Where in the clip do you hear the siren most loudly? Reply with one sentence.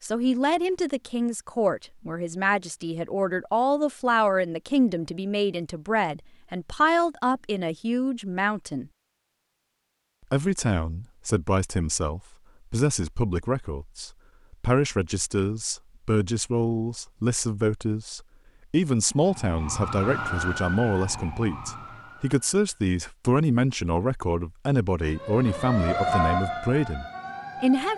The loudest moment of the siren is at 26 seconds.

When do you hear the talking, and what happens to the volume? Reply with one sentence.
The talking can be heard from 0.0 to 8.9 s, at a steady volume; and from 10.3 to 27.9 s, at a steady volume.